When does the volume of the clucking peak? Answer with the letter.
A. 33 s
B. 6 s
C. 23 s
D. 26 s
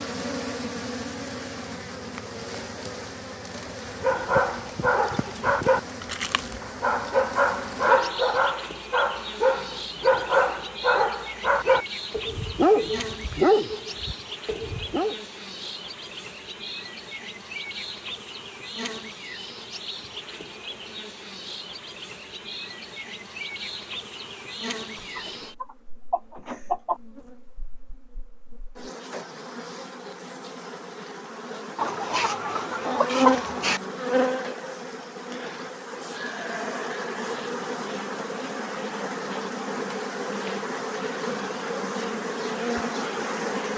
A.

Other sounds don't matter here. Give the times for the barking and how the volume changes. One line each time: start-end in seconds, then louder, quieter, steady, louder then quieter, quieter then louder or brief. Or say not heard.
4.0-15.2 steady.